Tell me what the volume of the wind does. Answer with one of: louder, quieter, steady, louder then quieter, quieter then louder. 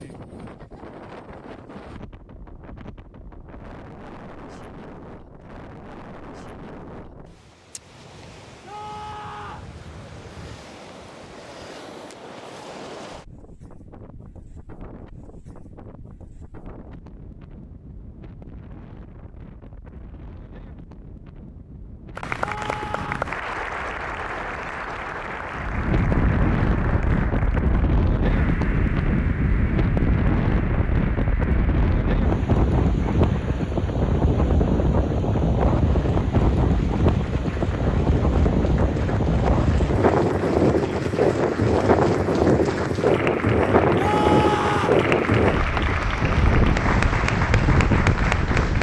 louder.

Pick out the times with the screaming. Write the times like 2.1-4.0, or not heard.
8.6-9.7, 22.4-23.3, 44.0-45.0.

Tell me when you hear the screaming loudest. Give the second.
44 s.